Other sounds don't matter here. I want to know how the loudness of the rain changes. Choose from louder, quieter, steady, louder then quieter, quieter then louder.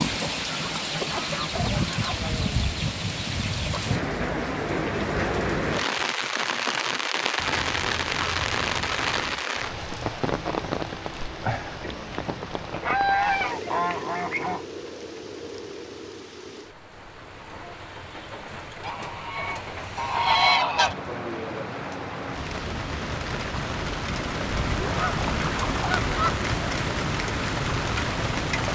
quieter then louder.